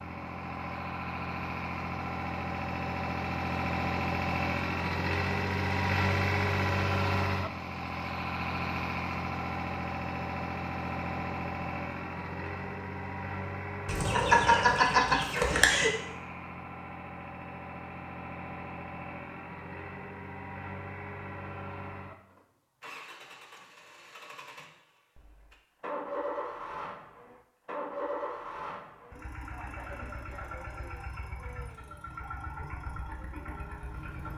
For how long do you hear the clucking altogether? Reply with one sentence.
The clucking can be heard for 2 seconds in total.